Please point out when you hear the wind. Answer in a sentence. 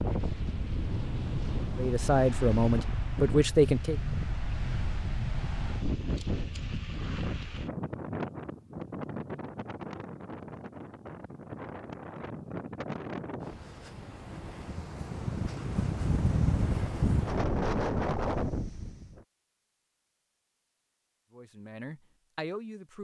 The wind can be heard from 0.0 to 19.2 s.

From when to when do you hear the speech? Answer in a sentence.
You can hear the speech from 1.8 to 4.0 s and from 21.3 to 22.9 s.